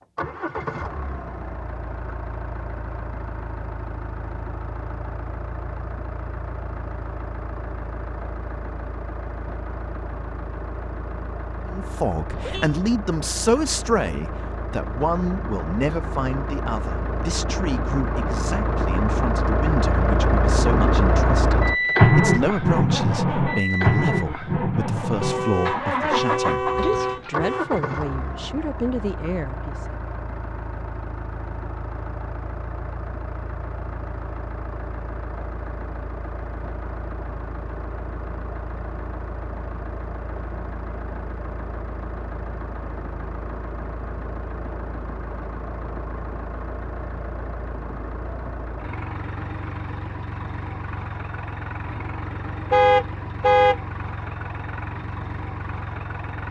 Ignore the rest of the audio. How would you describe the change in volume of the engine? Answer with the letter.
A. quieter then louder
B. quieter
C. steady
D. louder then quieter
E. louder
D.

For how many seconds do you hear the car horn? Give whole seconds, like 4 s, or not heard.
4 s.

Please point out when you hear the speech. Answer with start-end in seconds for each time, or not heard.
11.7-29.9.